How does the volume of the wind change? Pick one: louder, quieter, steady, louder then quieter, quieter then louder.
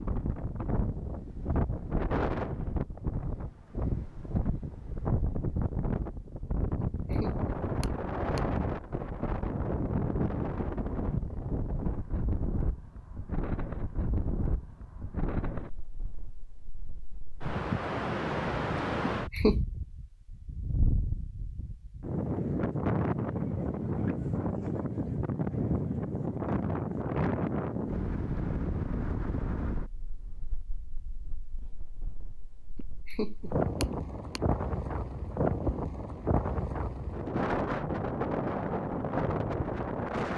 steady.